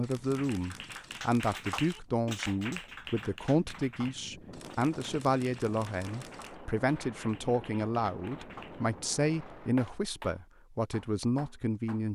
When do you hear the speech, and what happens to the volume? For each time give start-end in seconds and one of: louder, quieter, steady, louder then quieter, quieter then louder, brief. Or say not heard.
0.0-12.0 steady.